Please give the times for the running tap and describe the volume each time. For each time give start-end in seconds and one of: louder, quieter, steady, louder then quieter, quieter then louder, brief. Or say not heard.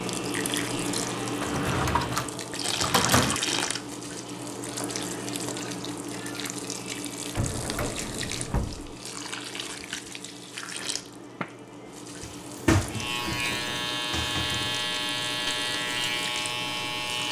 0.0-17.2 quieter.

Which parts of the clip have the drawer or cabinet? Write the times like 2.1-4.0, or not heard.
1.4-3.4, 7.3-8.9, 12.2-14.8.